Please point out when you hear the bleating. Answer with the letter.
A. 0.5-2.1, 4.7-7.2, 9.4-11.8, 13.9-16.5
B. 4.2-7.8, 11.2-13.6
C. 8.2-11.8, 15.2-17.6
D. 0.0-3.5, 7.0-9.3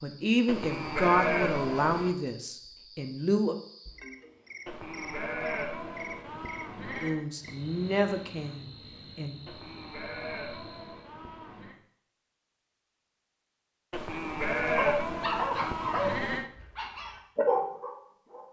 A.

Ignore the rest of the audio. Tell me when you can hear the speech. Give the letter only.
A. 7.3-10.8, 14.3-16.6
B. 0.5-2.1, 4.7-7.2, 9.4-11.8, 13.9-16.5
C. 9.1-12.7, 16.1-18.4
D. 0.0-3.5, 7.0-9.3
D.